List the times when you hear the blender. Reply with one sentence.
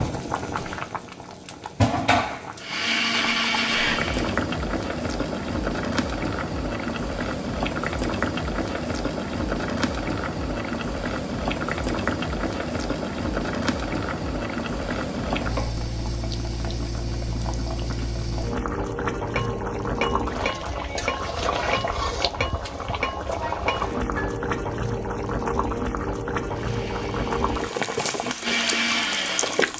You can hear the blender from 2.6 to 4.4 s and from 26.4 to 29.7 s.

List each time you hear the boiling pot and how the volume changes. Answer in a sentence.
You can hear the boiling pot from 0.0 to 29.7 s, at a steady volume.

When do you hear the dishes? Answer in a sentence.
The dishes can be heard from 19.4 to 24.4 s.